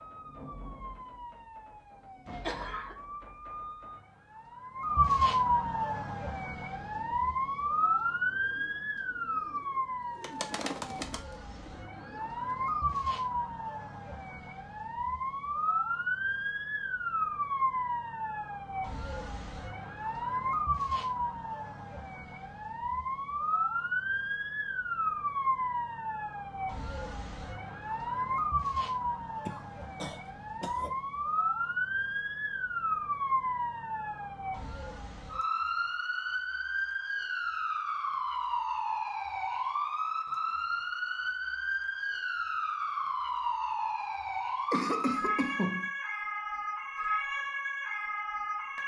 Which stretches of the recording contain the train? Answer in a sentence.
You can't hear the train here.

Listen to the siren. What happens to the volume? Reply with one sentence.
The loudness of the siren stays about the same.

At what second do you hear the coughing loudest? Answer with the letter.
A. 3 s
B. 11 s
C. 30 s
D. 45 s
D.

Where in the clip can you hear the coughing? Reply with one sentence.
The coughing can be heard from 2.4 to 3.0 s, from 29.4 to 30.9 s and from 44.7 to 45.9 s.